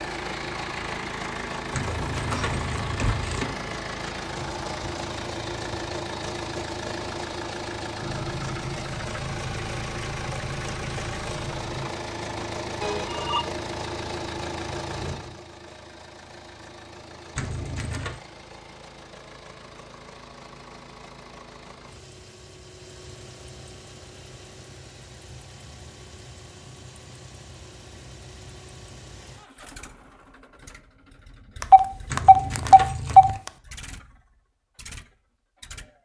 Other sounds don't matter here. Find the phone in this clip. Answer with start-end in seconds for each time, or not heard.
2.1-2.6, 12.8-13.4, 31.6-33.5.